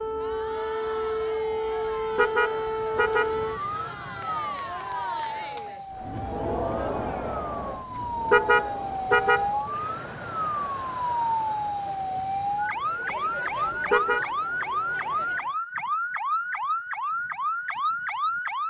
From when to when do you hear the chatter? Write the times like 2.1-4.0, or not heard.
0.0-15.6.